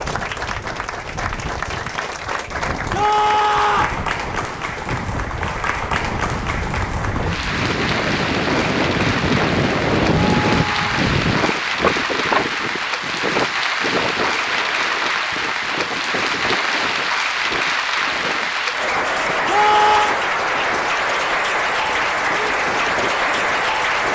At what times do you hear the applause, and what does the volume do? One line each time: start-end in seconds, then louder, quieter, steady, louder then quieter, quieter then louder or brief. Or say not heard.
0.0-24.1 louder.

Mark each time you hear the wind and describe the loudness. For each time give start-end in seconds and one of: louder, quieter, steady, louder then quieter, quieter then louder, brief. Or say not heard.
0.0-24.1 louder then quieter.